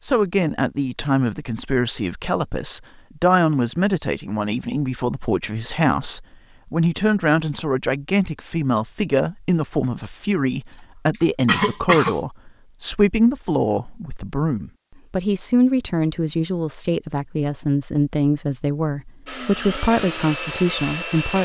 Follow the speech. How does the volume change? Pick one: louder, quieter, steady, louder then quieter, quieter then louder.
steady.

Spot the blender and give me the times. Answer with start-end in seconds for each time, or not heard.
19.2-21.4.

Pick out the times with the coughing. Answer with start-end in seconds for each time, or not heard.
10.7-12.2.